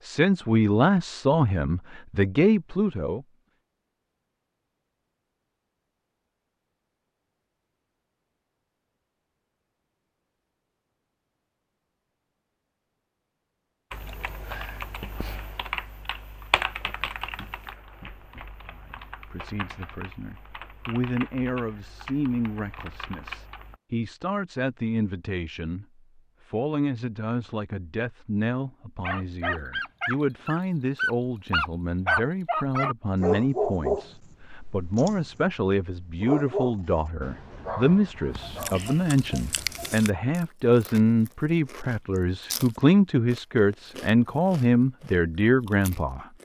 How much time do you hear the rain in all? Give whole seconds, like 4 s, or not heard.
not heard.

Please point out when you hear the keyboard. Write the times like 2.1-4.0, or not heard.
13.9-23.8.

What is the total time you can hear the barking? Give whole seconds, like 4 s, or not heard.
10 s.